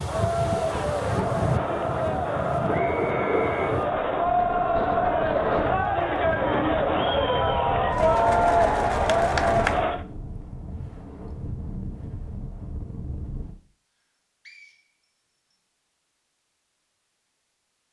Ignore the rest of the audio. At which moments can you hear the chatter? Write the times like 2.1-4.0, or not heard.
0.0-10.1.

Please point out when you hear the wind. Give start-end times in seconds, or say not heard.
0.0-13.6.